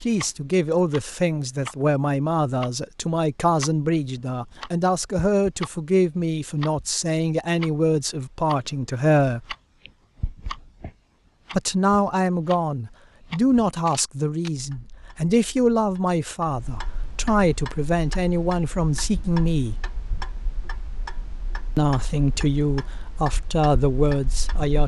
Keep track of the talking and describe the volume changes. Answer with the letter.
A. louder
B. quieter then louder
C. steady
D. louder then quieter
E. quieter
C.